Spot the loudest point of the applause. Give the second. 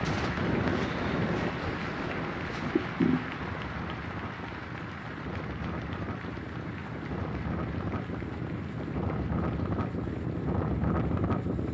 3 s.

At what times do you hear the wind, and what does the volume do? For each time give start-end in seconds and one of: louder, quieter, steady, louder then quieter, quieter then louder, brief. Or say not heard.
0.0-11.6 quieter then louder.